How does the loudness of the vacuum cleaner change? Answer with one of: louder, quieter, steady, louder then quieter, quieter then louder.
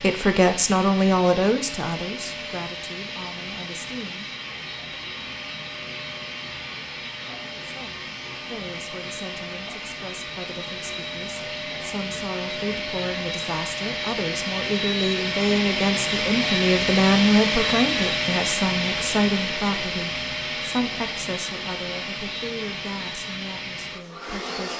louder then quieter.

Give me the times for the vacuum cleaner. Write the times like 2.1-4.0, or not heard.
0.0-24.7.